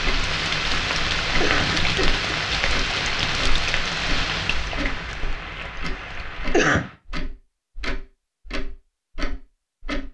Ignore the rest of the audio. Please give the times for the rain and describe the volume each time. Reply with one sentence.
You can hear the rain from 0.0 to 7.0 s, getting quieter.